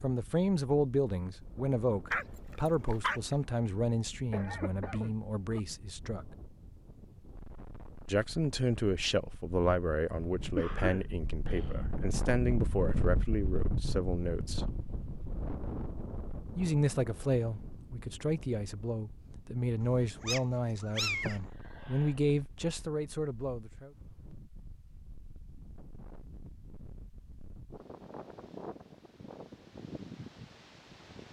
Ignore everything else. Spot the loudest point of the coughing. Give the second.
11 s.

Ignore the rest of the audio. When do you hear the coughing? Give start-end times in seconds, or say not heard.
4.3-5.6, 10.6-11.9, 21.2-22.1.